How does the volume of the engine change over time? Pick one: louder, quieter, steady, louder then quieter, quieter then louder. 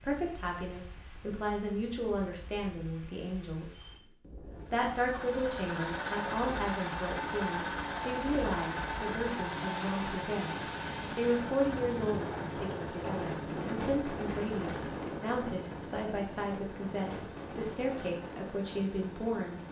quieter.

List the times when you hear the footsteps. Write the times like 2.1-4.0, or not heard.
not heard.